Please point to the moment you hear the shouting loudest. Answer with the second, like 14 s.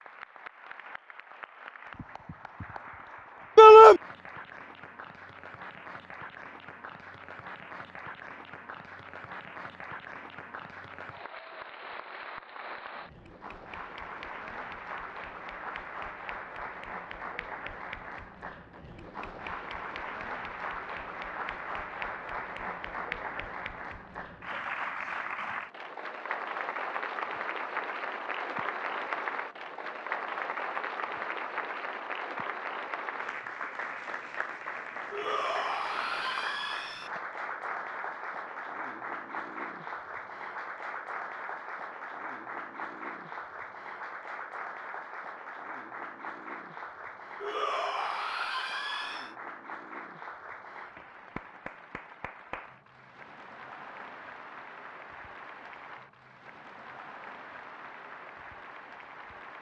4 s.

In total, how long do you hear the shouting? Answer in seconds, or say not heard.
4 s.